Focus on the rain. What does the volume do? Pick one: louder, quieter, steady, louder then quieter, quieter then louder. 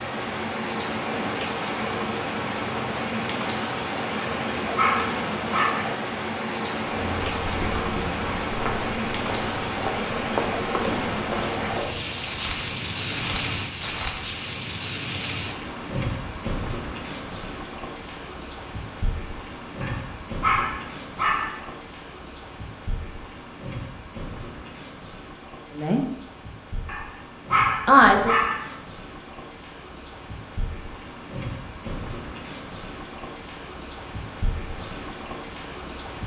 quieter.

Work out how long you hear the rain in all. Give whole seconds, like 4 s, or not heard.
36 s.